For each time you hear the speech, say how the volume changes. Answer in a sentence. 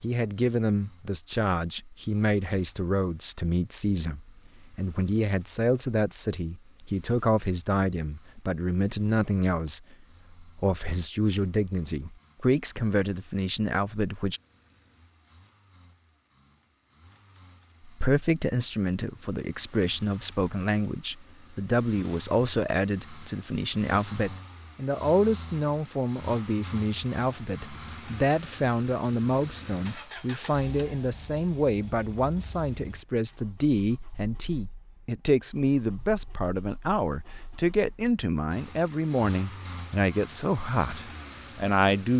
You can hear the speech from 0.0 to 14.4 s, at a steady volume; and from 17.9 to 42.1 s, at a steady volume.